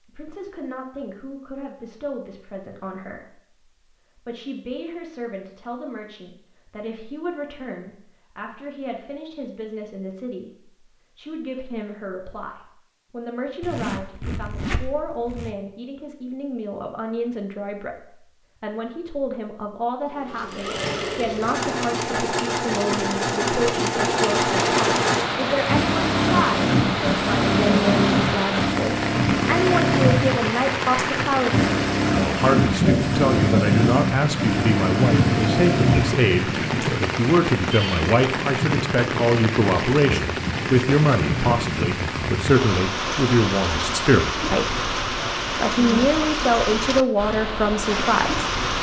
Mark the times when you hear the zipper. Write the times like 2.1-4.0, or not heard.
13.6-15.5.